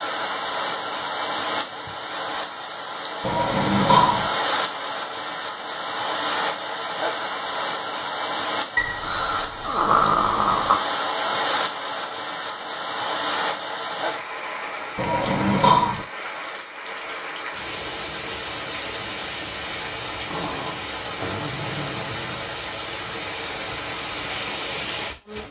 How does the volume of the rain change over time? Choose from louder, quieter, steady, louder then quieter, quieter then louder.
steady.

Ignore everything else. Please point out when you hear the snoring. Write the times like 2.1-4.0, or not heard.
3.2-4.3, 8.8-10.8, 14.9-16.1, 20.3-22.5.